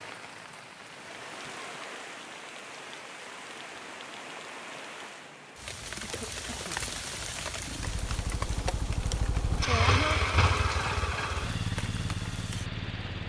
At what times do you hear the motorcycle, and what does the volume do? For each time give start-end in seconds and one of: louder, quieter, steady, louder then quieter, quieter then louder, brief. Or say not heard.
7.5-13.2 louder then quieter.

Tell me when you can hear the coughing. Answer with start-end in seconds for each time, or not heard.
6.0-6.9.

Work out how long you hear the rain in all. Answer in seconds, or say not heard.
13 s.